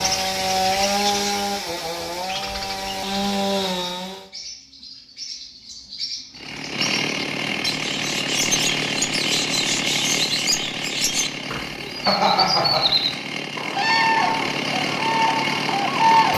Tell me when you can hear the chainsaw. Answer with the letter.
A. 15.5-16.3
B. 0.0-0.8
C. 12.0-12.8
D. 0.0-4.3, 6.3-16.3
D.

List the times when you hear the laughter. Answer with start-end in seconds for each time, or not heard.
12.0-12.8.